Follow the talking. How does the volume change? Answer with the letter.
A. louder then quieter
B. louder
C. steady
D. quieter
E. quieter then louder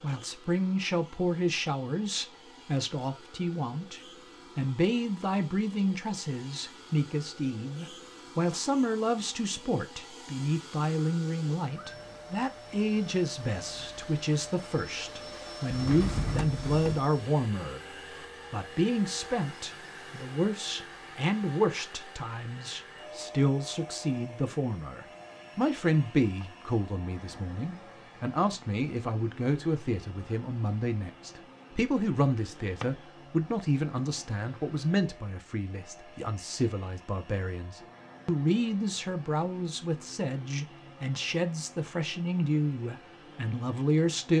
C.